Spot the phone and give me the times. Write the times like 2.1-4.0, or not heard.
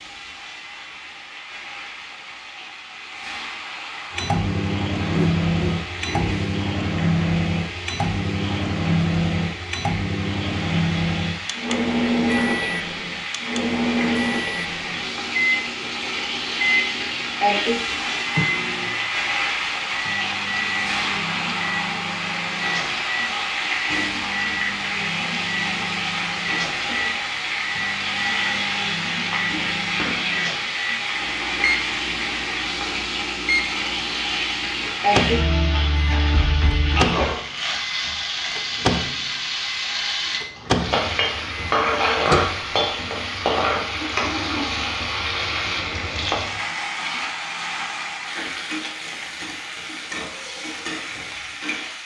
not heard.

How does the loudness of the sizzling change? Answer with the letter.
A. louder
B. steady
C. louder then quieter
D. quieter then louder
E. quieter
A.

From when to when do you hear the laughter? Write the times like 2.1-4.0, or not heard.
5.1-6.3.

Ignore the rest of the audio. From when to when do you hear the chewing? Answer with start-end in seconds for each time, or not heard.
not heard.